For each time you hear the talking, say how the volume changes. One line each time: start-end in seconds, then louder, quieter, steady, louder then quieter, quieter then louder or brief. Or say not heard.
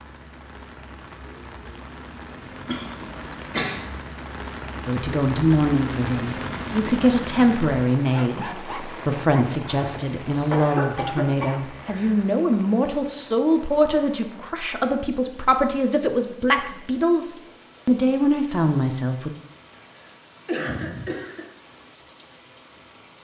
4.8-19.3 steady.